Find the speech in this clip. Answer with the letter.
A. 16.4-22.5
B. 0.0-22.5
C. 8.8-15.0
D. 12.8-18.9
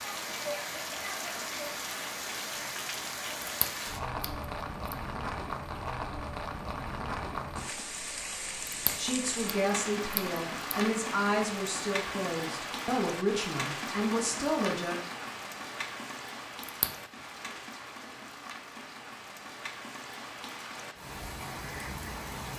C.